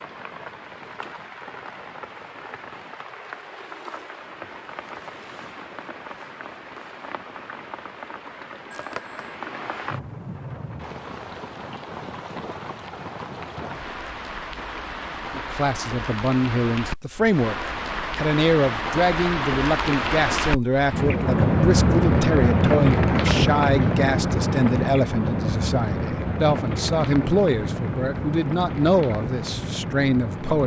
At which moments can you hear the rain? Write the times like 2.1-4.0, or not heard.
0.0-30.6.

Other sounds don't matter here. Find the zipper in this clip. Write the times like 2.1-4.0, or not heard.
not heard.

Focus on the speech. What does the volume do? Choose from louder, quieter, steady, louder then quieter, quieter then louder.
steady.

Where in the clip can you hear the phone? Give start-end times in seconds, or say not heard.
8.7-9.3.